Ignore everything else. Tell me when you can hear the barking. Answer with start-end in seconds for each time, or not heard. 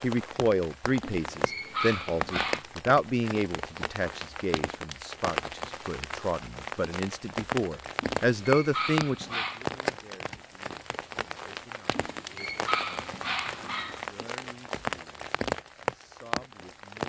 1.0-2.6, 8.2-9.7, 11.9-14.1.